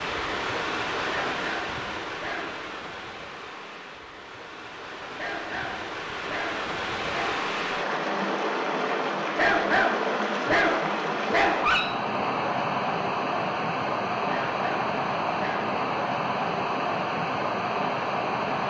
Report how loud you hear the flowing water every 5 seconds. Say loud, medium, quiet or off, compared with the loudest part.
medium, loud, loud, loud.